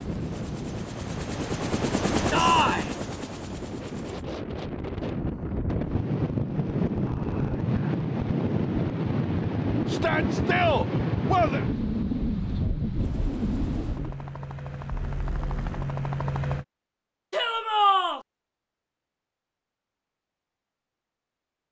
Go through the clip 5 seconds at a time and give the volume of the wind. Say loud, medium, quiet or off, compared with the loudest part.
medium, loud, loud, off, off.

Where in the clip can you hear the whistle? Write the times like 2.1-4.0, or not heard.
not heard.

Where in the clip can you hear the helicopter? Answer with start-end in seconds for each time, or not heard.
0.0-4.2, 12.9-16.6.